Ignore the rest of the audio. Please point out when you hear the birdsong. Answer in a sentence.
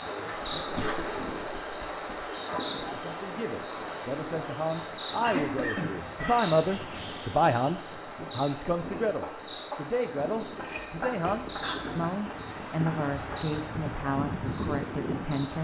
You can't hear the birdsong here.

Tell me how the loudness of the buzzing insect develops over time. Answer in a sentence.
The loudness of the buzzing insect goes down.